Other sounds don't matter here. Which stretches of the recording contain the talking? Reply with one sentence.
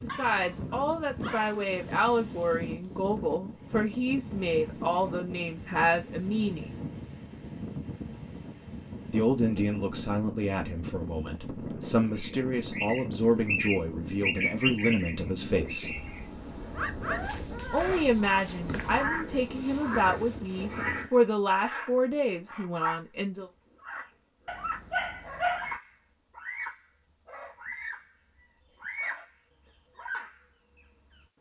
You can hear the talking from 0.0 to 6.8 s, from 9.1 to 16.0 s and from 17.7 to 23.5 s.